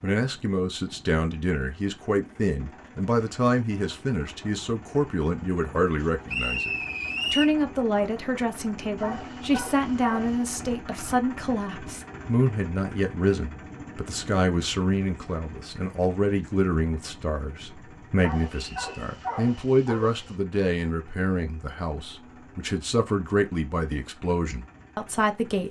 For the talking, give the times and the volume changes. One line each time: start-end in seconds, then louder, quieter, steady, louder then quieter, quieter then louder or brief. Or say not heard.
0.0-25.6 steady.